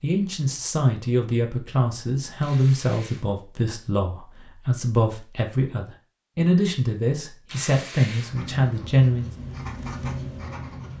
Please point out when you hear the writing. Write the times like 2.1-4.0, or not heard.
8.2-10.9.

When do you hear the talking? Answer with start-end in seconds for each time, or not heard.
0.0-9.3.